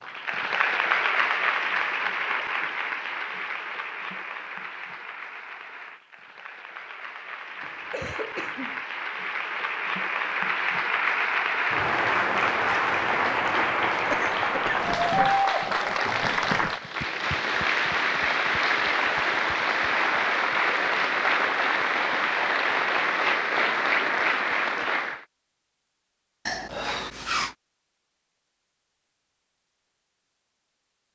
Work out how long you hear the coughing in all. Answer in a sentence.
You can hear the coughing for 3 seconds altogether.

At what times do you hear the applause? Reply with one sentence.
You can hear the applause from 0.0 to 25.2 s.